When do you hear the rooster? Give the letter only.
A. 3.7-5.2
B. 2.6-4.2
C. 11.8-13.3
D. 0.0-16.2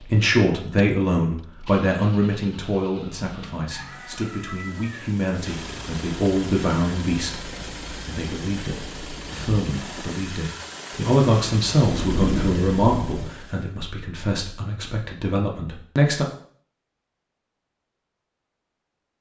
A.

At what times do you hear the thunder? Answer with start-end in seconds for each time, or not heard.
11.8-13.3.